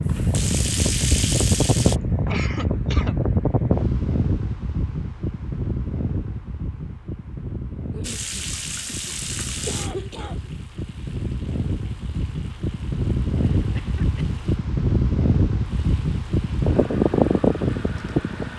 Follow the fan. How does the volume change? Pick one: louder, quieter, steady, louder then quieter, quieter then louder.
quieter then louder.